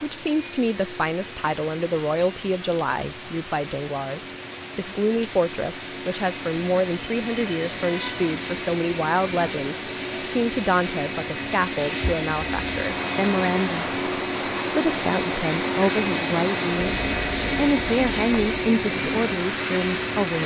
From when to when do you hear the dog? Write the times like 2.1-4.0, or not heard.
not heard.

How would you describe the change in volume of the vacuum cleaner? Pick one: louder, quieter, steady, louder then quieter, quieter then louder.
louder.